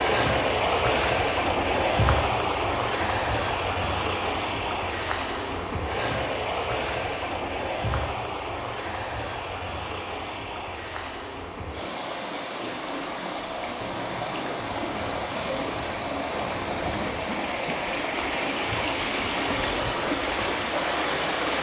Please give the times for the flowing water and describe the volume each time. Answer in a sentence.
You can hear the flowing water from 0.0 to 21.5 s, getting quieter then louder.